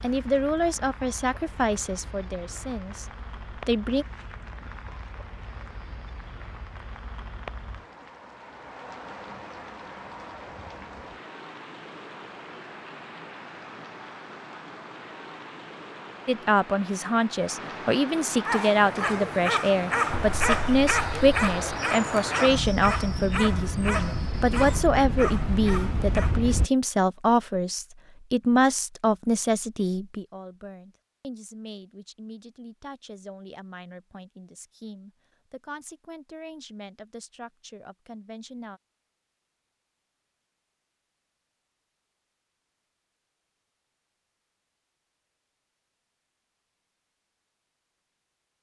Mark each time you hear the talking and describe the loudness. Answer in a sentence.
You can hear the talking from 0.0 to 4.0 s, getting quieter; and from 16.2 to 38.8 s, getting quieter.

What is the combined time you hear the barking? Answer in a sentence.
You can hear the barking for 8 seconds altogether.